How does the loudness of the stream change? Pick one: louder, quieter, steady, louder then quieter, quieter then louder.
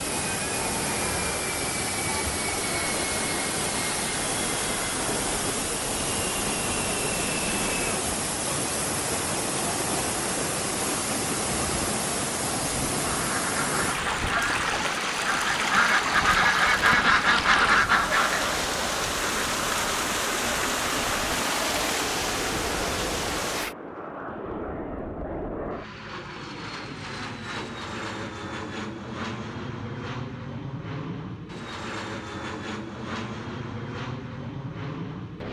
steady.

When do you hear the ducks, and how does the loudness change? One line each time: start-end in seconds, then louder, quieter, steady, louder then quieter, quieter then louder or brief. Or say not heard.
13.1-18.6 louder.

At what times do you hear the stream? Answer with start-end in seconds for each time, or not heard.
0.0-23.8.